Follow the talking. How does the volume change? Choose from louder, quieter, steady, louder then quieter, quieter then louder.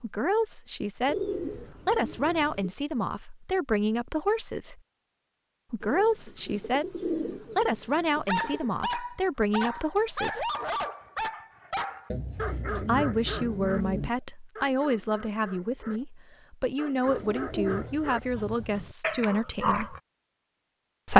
steady.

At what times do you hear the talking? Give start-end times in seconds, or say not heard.
0.0-4.8, 5.7-10.5, 12.8-19.9.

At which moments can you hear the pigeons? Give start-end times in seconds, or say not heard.
1.1-2.7, 5.8-8.7, 12.1-14.1, 17.1-18.9.